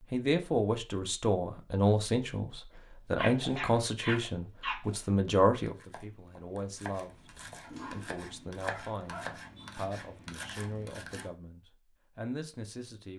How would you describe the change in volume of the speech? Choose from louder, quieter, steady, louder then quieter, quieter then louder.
quieter.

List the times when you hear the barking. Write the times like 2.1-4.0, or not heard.
2.8-4.8, 7.6-9.8.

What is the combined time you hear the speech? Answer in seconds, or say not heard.
13 s.